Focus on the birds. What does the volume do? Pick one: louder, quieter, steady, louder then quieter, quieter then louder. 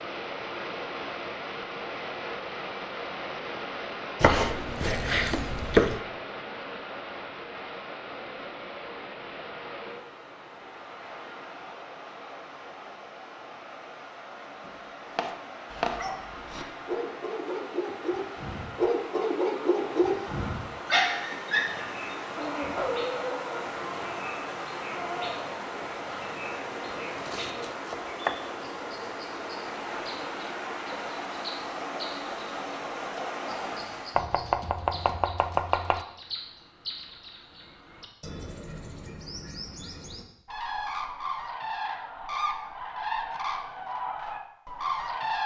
louder.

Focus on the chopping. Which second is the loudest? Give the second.
6 s.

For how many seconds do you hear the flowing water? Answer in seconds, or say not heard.
34 s.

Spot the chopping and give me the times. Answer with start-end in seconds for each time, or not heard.
4.2-6.0, 14.7-16.1, 27.1-28.6, 34.1-36.0.